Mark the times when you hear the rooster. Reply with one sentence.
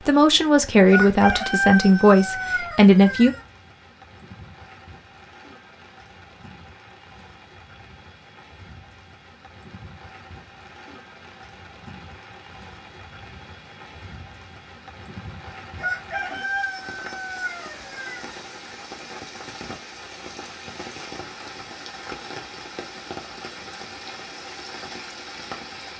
The rooster can be heard from 0.8 to 3.5 s and from 15.8 to 18.4 s.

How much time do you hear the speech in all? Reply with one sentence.
You can hear the speech for 3 seconds altogether.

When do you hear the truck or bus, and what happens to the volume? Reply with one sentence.
You can't hear the truck or bus here.